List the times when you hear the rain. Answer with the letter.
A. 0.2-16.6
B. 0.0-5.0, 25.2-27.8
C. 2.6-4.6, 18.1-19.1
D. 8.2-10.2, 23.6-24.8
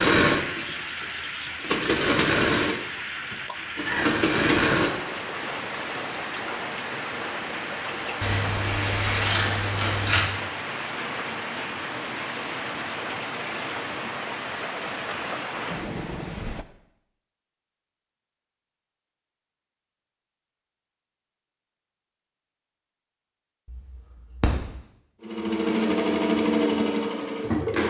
A.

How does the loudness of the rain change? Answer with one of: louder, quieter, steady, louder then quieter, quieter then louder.
steady.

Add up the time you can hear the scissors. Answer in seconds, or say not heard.
3 s.